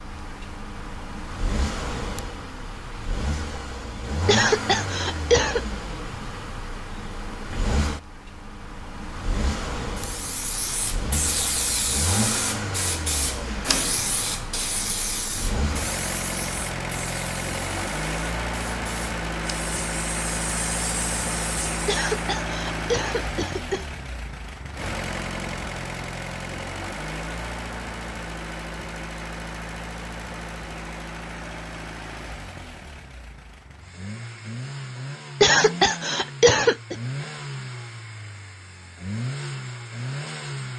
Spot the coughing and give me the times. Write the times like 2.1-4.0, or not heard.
4.2-5.7, 21.9-23.9, 35.4-37.0.